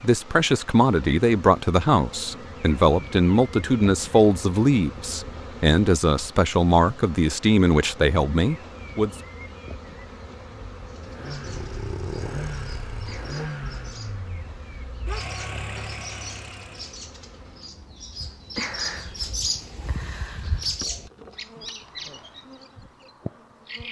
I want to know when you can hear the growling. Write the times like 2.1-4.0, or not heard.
11.4-13.3.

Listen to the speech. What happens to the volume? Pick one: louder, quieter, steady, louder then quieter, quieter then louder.
steady.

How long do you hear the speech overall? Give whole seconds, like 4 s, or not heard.
9 s.